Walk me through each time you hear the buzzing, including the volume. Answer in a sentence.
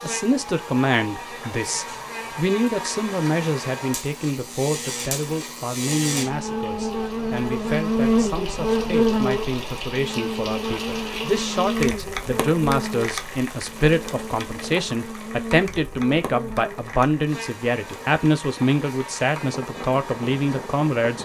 You can hear the buzzing from 0.0 to 21.2 s, getting louder then quieter.